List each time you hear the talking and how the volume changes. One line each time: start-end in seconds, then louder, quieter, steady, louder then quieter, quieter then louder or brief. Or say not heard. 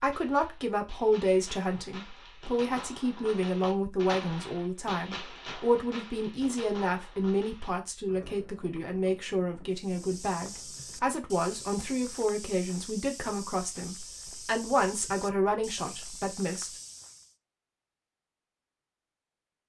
0.0-16.7 steady.